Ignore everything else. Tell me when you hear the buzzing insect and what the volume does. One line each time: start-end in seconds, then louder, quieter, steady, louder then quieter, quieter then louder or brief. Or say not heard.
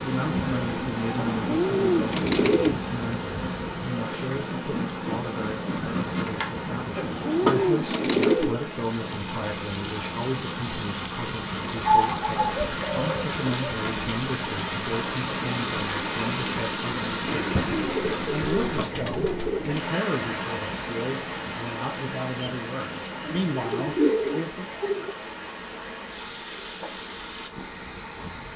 0.0-28.5 quieter.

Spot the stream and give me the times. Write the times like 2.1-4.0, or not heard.
0.0-28.5.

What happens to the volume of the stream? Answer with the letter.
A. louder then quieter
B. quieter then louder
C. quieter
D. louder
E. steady
A.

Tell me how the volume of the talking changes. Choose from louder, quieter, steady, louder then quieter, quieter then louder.
steady.